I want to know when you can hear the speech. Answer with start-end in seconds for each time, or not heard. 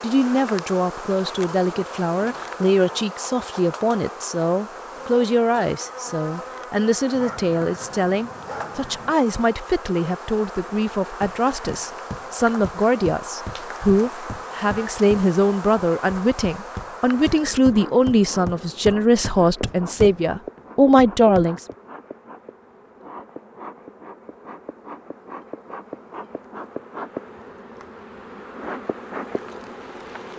0.0-21.6.